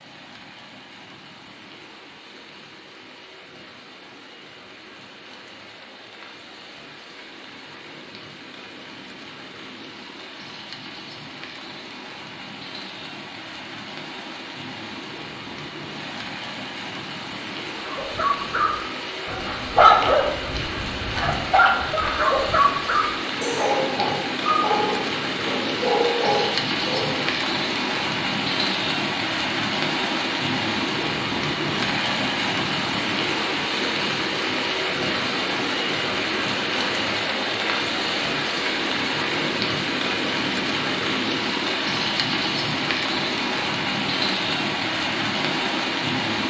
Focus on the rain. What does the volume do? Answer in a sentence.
The volume of the rain goes up.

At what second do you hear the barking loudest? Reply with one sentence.
The loudest moment of the barking is at 20 seconds.